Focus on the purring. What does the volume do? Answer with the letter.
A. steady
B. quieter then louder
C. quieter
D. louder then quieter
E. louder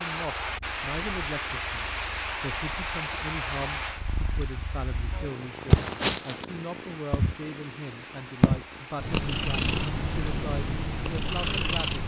E.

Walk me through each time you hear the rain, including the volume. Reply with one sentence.
You can hear the rain from 0.0 to 12.0 s, getting quieter.